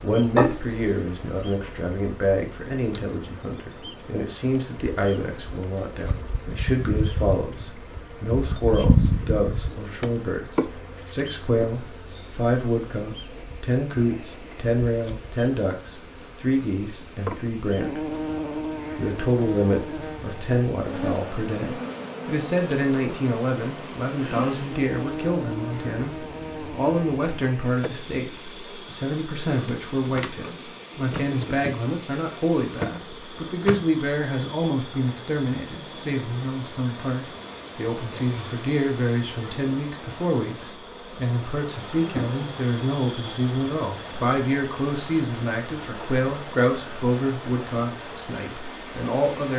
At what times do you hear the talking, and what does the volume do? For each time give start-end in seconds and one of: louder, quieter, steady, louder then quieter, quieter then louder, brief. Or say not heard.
0.0-18.1 steady
18.9-49.5 steady.